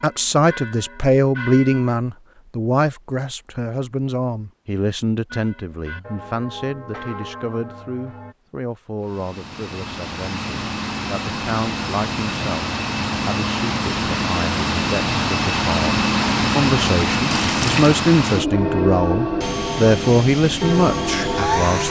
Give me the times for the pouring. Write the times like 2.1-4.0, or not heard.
17.3-17.9.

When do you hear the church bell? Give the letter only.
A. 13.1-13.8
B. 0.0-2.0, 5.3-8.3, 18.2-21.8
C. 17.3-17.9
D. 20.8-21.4
B.